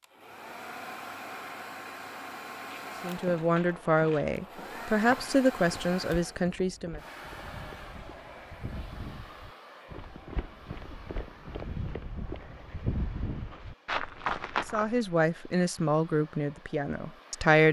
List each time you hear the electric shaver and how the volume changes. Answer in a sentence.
The electric shaver can't be heard in this clip.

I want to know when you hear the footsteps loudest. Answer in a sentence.
The volume of the footsteps peaks at 14 seconds.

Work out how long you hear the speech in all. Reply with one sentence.
The speech can be heard for 7 seconds in total.